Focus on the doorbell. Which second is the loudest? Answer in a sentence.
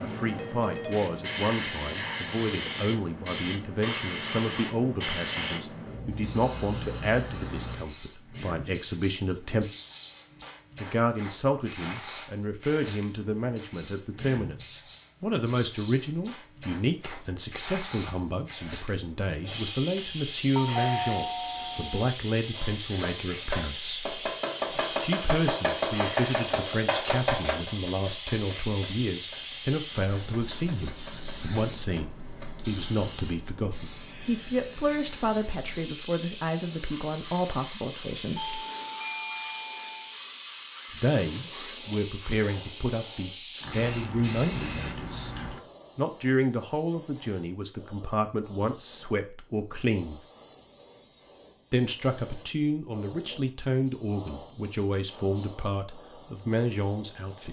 The loudest moment of the doorbell is at 21 seconds.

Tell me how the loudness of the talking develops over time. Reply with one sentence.
The loudness of the talking stays about the same.